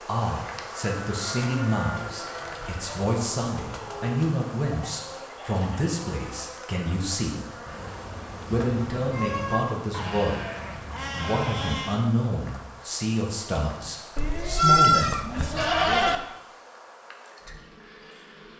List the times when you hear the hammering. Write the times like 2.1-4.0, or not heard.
not heard.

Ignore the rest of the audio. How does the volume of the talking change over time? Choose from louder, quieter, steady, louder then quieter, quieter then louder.
steady.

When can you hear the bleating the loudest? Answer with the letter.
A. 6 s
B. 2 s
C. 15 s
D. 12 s
C.